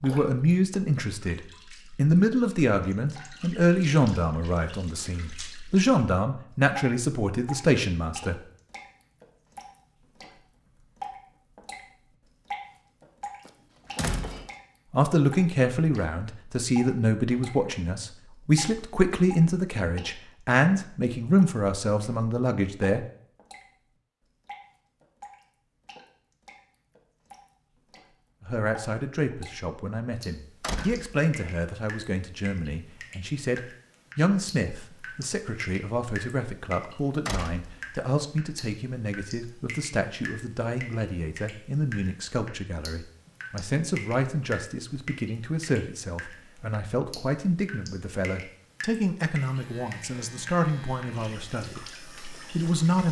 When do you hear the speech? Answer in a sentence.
The speech can be heard from 0.0 to 8.4 s, from 14.9 to 23.1 s and from 28.4 to 53.0 s.